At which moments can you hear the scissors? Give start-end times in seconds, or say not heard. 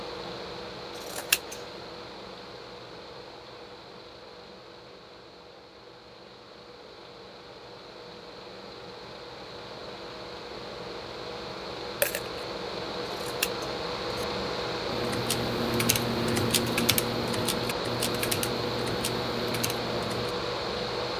0.9-1.6, 13.1-14.2.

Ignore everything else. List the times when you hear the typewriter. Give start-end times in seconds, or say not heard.
14.8-20.3.